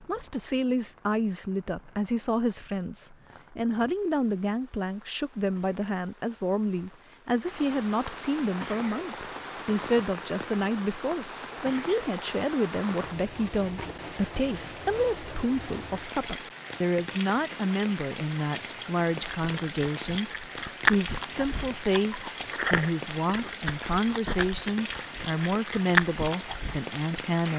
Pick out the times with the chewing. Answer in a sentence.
You can hear the chewing from 19.4 to 26.9 s.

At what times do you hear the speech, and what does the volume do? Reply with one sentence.
The speech can be heard from 0.1 to 27.5 s, at a steady volume.